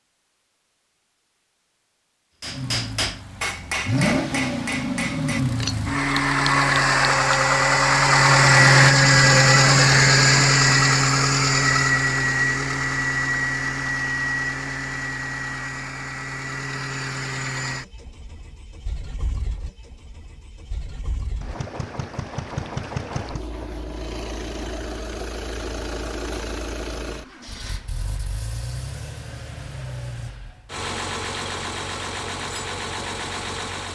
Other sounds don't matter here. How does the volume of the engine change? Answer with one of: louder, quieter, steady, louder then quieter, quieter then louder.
quieter.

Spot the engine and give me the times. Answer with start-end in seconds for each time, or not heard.
2.4-33.9.